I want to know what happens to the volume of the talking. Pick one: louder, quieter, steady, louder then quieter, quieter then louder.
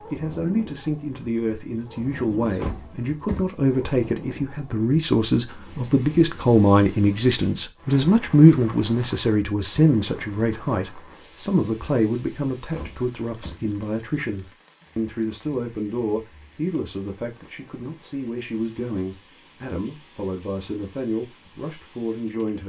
louder then quieter.